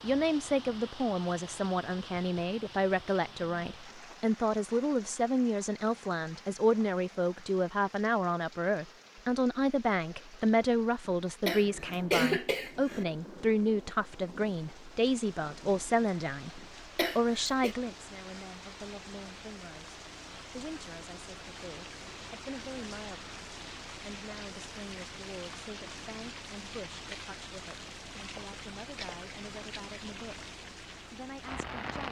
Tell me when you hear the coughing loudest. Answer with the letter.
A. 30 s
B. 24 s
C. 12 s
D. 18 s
C.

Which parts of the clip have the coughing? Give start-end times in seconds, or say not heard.
11.4-13.1, 16.6-17.8.